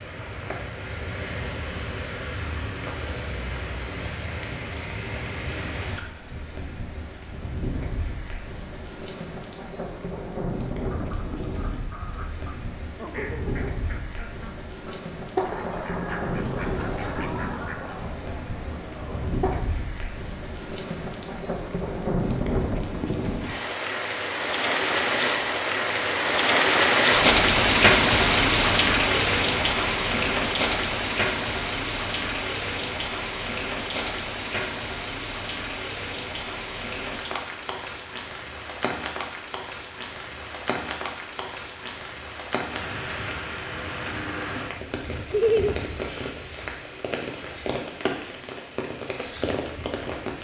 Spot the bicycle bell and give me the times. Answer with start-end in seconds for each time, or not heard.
not heard.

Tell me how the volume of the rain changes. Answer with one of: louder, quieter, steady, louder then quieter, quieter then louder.
louder then quieter.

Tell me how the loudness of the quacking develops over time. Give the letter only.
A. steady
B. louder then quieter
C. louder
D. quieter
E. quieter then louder
B.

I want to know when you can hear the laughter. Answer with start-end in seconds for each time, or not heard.
45.3-45.8.